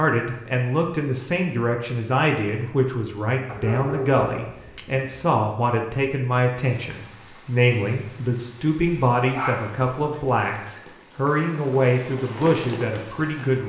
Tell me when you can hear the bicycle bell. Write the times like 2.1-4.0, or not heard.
not heard.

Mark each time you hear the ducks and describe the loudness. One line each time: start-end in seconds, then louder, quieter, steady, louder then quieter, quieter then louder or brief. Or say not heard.
not heard.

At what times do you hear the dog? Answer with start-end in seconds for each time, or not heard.
3.5-5.2, 9.2-10.2.